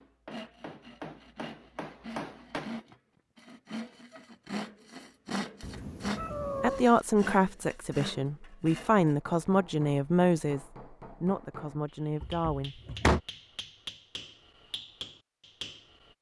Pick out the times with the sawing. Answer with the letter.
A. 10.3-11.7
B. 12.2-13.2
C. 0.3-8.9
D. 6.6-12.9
C.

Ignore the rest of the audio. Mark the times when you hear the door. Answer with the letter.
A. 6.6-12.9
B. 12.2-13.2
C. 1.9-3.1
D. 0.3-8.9
B.